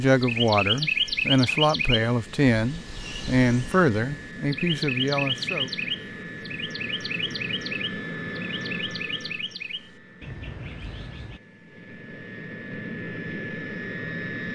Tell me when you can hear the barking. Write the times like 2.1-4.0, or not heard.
not heard.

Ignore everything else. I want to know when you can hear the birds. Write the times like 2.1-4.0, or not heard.
0.0-11.4.